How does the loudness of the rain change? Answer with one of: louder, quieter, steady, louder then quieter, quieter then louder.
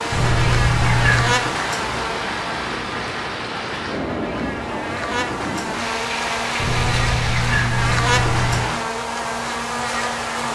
steady.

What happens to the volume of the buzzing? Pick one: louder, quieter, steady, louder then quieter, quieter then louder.
quieter then louder.